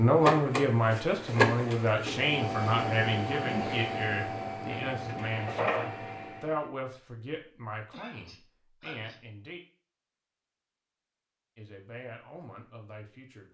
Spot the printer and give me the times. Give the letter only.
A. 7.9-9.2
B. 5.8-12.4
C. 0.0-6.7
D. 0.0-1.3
C.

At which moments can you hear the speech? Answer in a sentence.
You can hear the speech from 0.0 to 9.6 s and from 11.6 to 13.4 s.